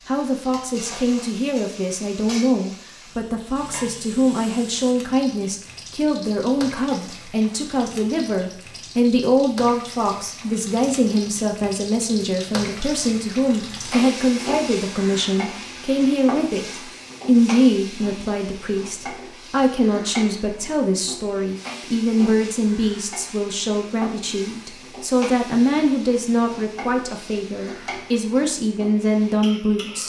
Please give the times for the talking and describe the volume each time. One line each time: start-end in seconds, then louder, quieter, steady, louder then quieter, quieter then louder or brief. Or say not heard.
0.1-30.0 steady.